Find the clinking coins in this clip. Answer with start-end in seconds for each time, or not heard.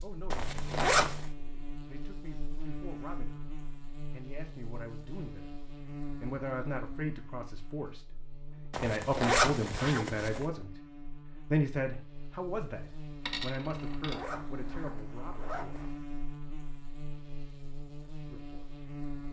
13.2-14.2.